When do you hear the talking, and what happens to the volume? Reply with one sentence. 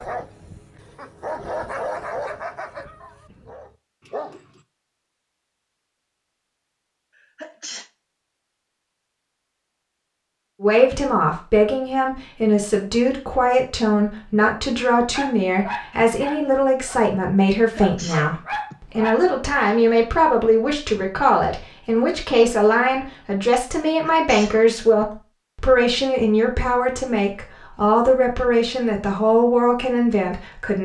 The talking can be heard from 10.6 to 30.7 s, at a steady volume.